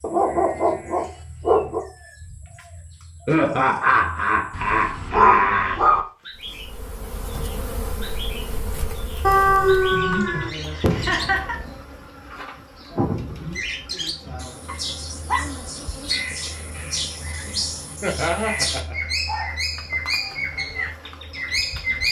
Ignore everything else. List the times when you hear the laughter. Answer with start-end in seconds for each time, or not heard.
3.2-5.8, 10.2-11.6, 18.0-18.9.